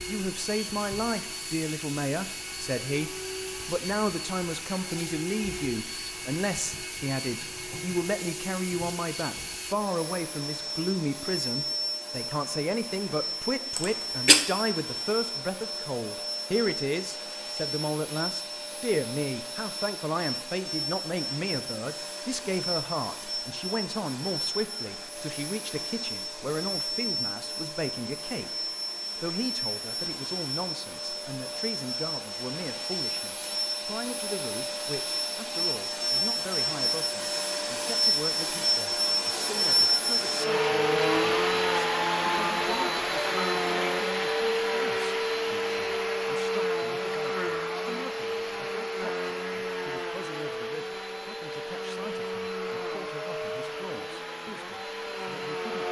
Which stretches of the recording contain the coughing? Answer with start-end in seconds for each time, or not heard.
13.8-14.4.